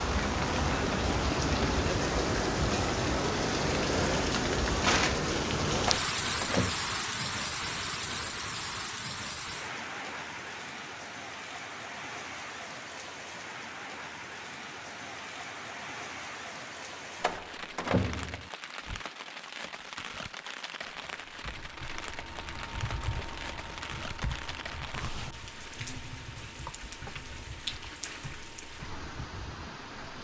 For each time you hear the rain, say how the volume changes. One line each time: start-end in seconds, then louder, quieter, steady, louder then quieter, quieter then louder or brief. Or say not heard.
0.0-30.1 quieter.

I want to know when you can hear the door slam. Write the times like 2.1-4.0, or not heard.
5.8-6.8, 17.2-18.5.